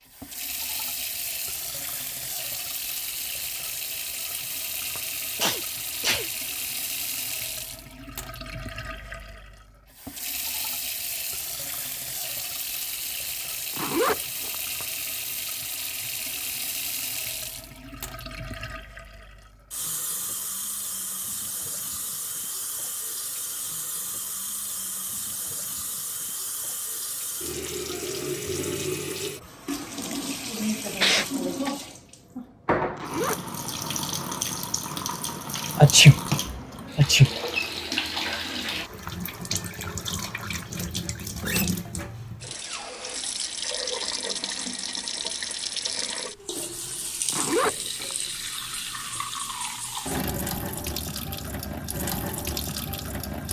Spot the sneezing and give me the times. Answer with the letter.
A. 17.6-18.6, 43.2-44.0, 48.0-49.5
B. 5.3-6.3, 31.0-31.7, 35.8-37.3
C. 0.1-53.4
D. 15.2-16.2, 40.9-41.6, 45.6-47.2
B.